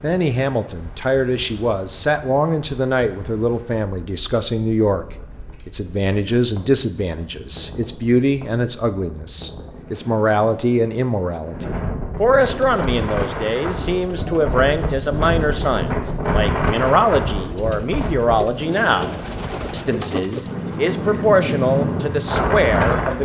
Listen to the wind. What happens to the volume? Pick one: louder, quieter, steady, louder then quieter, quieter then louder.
louder.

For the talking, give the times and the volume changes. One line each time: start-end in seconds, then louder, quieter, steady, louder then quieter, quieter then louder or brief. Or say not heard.
0.0-23.2 steady.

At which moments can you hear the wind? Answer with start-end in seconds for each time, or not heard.
0.0-23.2.